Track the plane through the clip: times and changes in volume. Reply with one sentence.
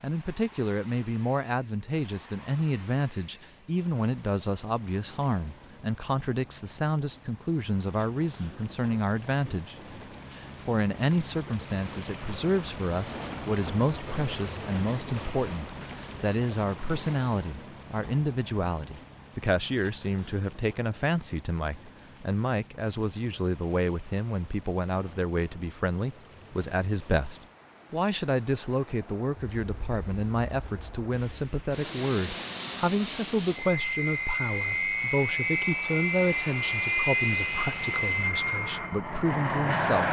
The plane can be heard from 29.3 to 40.0 s, getting louder.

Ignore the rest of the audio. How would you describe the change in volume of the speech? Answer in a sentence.
The volume of the speech stays about the same.